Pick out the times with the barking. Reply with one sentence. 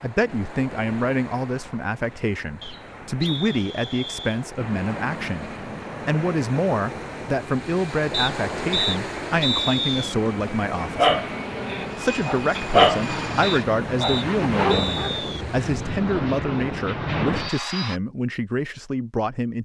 You can hear the barking from 10.9 to 15.1 s.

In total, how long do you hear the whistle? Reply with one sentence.
The whistle can be heard for 6 seconds in total.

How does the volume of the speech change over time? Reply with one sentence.
The loudness of the speech stays about the same.